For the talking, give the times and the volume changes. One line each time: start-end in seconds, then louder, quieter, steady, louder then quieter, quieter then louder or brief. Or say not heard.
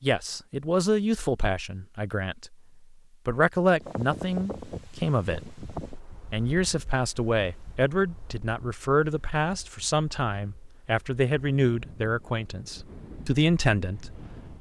0.0-2.5 brief
3.2-14.2 steady.